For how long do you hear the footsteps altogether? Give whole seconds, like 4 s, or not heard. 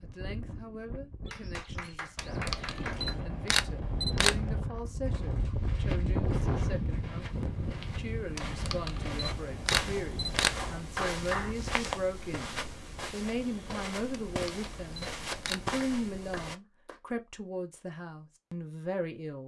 11 s.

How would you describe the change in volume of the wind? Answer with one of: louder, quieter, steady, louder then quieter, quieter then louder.
louder then quieter.